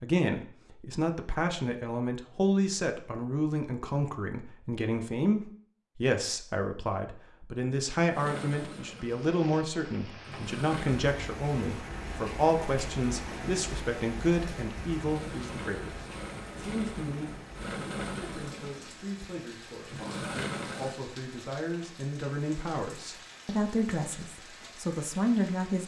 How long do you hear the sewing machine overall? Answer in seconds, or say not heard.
9 s.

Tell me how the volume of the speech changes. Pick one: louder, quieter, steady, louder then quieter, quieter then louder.
quieter then louder.